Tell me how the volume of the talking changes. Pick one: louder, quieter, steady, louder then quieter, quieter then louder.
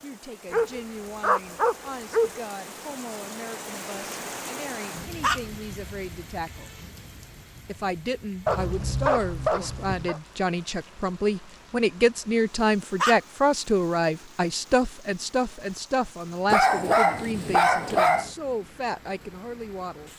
louder then quieter.